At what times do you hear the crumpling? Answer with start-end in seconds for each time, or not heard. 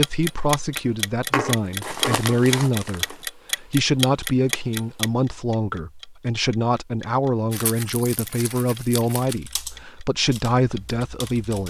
1.3-3.1, 7.5-9.3.